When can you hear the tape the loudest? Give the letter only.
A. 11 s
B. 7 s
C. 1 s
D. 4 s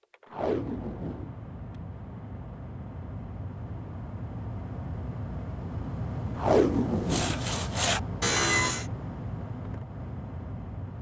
B.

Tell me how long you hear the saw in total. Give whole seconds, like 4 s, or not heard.
2 s.